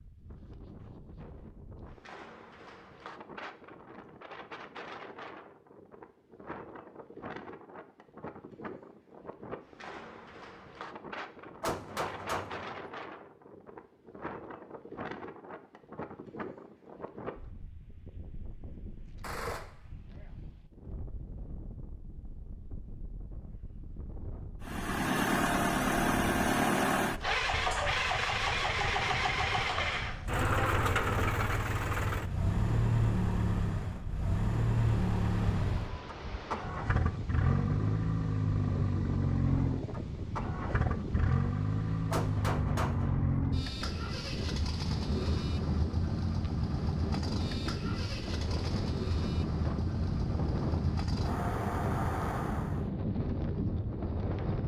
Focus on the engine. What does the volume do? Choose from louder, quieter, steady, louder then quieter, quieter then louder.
quieter.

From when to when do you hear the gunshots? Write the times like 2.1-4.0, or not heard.
11.6-12.9, 19.2-20.3, 42.1-43.4.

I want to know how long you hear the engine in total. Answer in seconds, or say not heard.
28 s.